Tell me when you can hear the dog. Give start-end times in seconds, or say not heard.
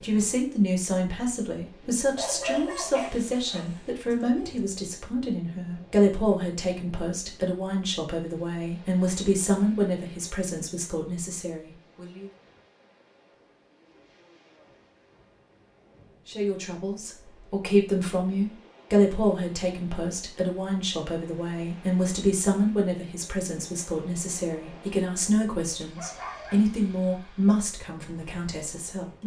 2.1-4.6, 25.8-26.6.